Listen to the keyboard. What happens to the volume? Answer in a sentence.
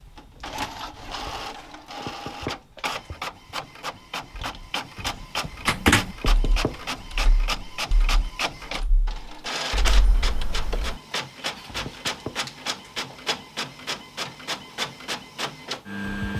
The loudness of the keyboard goes down, then up.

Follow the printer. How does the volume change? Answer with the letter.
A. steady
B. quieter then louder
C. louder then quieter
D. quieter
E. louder
A.